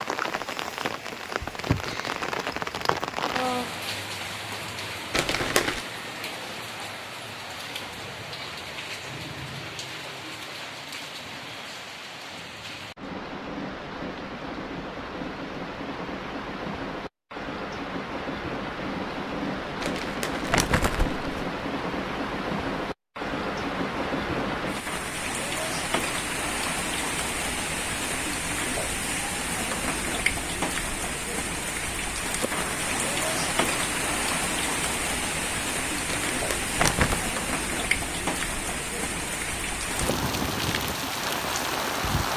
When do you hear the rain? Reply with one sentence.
The rain can be heard from 0.0 to 42.3 s.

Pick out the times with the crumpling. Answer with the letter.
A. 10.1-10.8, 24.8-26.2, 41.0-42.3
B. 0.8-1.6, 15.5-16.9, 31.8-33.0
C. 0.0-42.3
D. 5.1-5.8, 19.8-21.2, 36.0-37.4
D.